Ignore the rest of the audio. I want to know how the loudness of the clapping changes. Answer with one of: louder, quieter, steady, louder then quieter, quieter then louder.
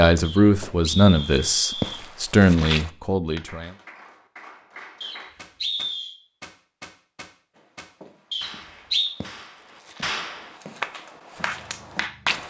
louder.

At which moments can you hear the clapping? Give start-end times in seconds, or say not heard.
3.2-12.4.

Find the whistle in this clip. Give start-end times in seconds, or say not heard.
0.2-2.0, 5.0-6.2, 8.3-9.1.